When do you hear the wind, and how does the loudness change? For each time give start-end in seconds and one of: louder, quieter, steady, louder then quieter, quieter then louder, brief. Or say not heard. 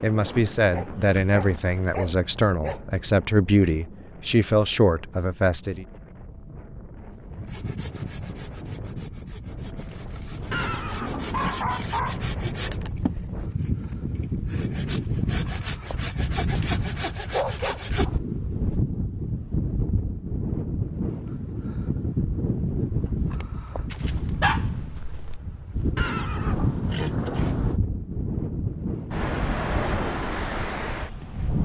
0.0-31.5 louder.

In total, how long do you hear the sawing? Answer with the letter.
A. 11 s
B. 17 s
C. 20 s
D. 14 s
A.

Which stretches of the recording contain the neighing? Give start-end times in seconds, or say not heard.
10.5-11.6, 25.9-27.8.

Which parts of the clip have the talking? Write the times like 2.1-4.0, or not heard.
0.0-5.8.